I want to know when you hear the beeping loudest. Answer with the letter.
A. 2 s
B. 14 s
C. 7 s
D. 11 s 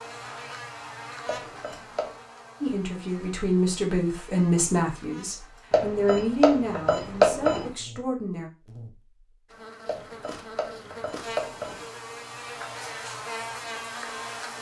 C.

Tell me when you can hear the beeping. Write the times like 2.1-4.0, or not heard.
1.2-2.1, 5.7-7.7, 9.8-11.8.